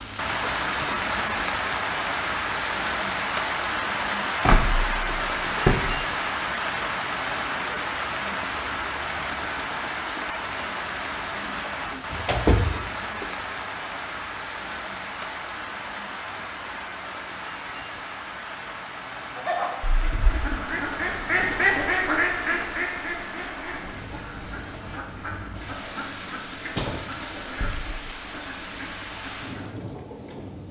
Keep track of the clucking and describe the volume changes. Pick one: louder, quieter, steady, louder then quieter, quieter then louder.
quieter.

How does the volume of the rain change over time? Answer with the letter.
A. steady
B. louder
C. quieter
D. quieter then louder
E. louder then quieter
C.